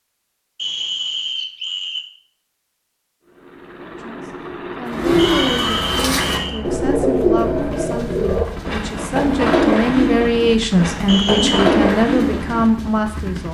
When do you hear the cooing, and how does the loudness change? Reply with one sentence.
You can hear the cooing from 4.8 to 12.8 s, at a steady volume.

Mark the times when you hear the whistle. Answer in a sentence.
You can hear the whistle from 0.6 to 2.0 s, from 5.2 to 6.6 s and from 11.1 to 11.7 s.